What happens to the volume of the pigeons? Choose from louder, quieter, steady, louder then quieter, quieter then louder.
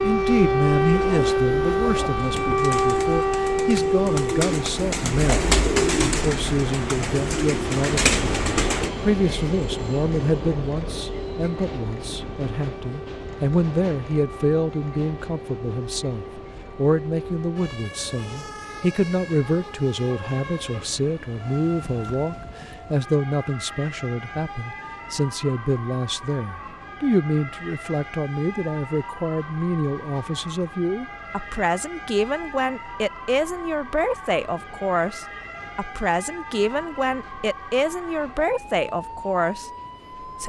louder.